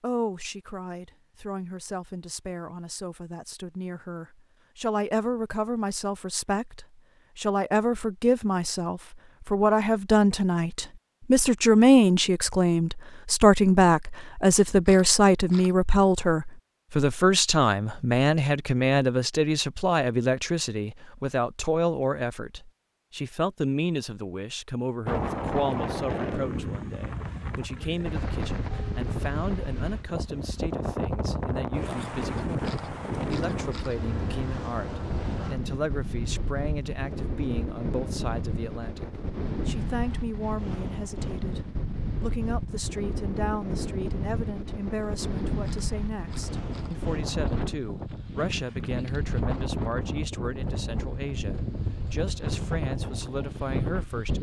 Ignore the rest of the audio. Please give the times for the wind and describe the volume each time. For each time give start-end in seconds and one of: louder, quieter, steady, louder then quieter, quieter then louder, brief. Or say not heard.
25.1-54.3 steady.